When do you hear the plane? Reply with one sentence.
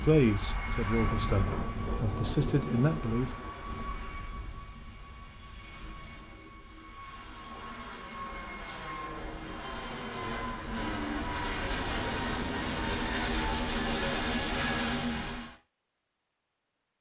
You can hear the plane from 0.0 to 15.6 s.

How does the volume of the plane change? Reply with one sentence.
The volume of the plane goes down, then up.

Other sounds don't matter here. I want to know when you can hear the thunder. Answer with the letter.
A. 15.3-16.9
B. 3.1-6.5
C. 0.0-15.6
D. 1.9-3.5
D.